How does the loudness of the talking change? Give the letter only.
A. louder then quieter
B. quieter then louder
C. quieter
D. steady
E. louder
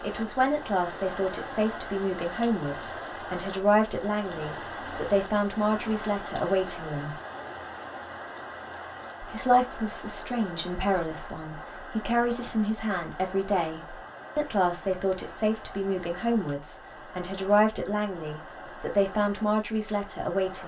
D.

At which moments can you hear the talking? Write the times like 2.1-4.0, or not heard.
0.0-7.2, 9.2-20.6.